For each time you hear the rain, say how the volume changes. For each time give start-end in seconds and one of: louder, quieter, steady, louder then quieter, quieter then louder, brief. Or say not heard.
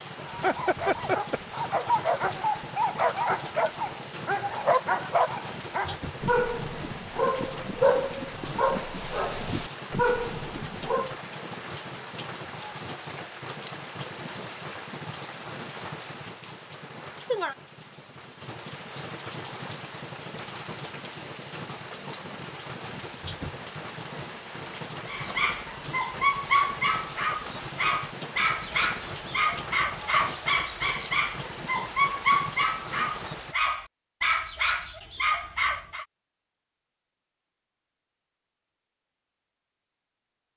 0.0-33.5 steady.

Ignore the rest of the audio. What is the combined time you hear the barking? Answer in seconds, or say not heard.
22 s.